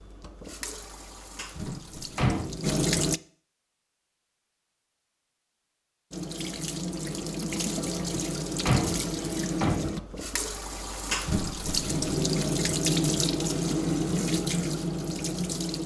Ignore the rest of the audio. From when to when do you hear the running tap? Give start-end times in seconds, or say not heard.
0.0-3.2, 6.1-15.8.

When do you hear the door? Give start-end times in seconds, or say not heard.
1.6-2.8, 8.1-10.1.